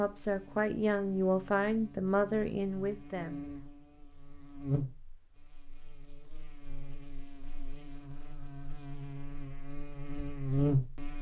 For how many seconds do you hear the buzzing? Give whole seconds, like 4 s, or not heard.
11 s.